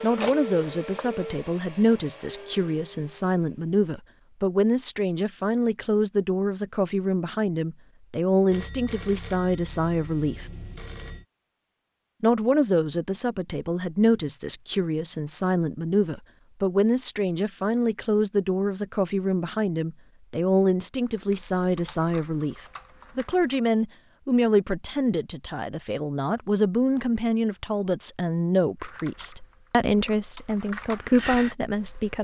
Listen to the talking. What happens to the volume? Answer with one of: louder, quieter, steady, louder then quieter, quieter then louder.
steady.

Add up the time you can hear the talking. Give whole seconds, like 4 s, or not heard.
30 s.